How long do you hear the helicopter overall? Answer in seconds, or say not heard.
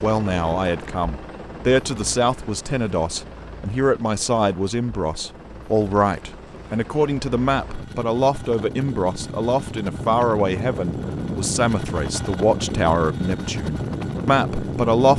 15 s.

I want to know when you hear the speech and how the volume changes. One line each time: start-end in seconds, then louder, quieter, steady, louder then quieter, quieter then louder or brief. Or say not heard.
0.0-15.1 steady.